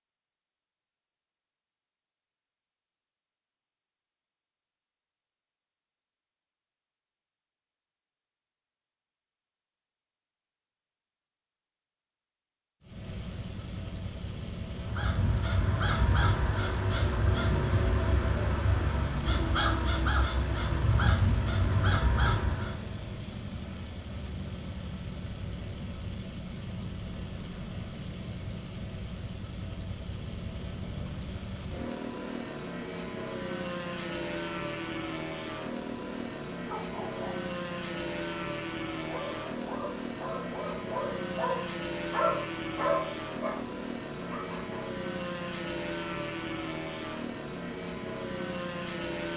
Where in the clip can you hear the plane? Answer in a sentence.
The plane can be heard from 12.8 to 49.3 s.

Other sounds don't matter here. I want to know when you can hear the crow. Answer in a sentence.
The crow can be heard from 14.8 to 22.9 s.